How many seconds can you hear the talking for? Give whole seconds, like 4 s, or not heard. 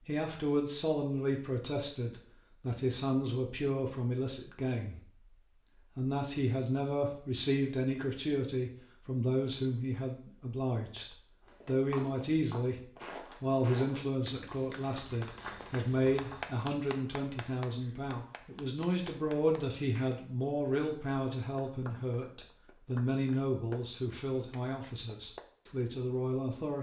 25 s.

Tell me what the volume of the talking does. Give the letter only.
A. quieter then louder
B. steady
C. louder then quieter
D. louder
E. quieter
B.